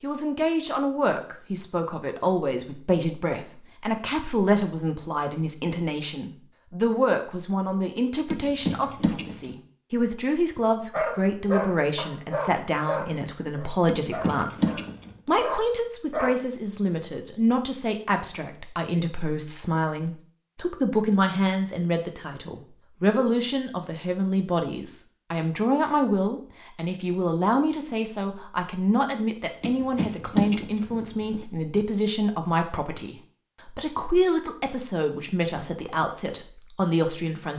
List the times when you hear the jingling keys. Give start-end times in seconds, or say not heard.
8.3-9.6, 13.8-15.2, 29.6-31.4.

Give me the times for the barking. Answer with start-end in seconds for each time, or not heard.
10.9-16.4.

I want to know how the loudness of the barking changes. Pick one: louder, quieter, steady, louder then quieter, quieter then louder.
quieter then louder.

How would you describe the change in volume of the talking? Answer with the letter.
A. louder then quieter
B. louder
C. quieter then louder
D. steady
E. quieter
D.